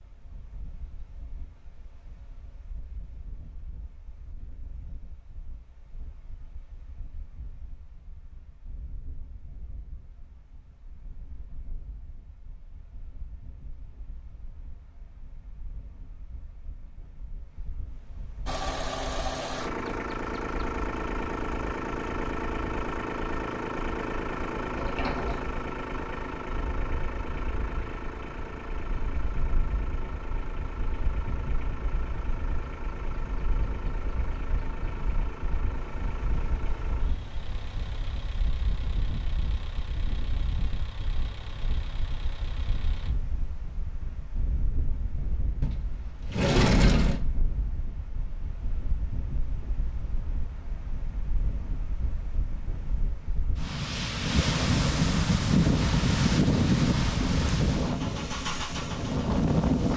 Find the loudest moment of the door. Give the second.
47 s.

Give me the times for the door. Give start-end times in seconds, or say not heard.
24.7-25.6, 45.6-47.2.